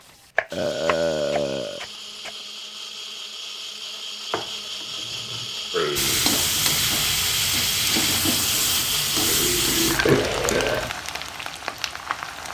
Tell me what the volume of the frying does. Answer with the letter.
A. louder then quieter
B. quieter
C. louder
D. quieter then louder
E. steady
B.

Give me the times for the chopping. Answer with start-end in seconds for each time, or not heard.
0.3-2.3.